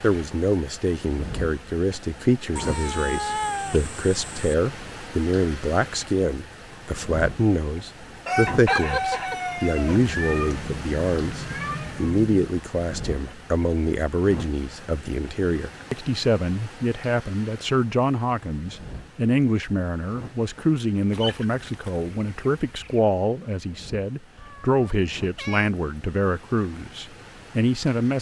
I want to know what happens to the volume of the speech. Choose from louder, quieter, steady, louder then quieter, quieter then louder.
steady.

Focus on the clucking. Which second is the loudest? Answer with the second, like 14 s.
9 s.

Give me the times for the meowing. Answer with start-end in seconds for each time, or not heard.
2.5-4.5, 9.9-12.6, 24.4-25.8.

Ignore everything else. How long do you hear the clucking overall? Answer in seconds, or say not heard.
4 s.